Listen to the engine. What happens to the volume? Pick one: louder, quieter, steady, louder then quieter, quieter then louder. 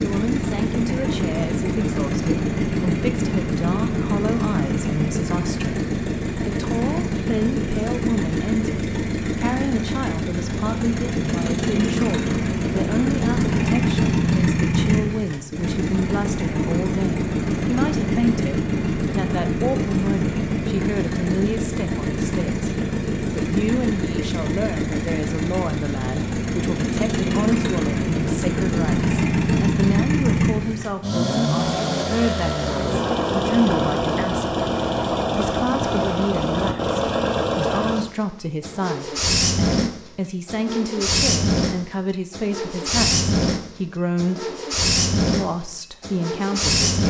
steady.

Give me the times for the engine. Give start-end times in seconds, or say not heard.
0.0-47.0.